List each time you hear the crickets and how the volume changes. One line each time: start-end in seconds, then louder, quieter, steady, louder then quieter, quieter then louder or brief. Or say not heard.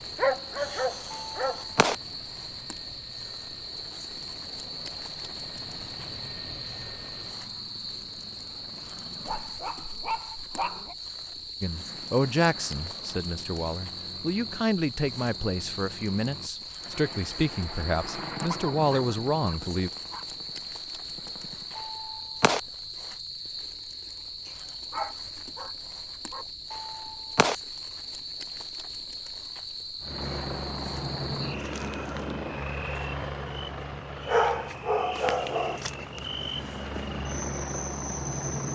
0.0-38.7 steady.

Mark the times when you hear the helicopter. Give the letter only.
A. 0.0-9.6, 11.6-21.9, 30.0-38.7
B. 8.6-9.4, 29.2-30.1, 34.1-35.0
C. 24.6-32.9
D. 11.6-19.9
A.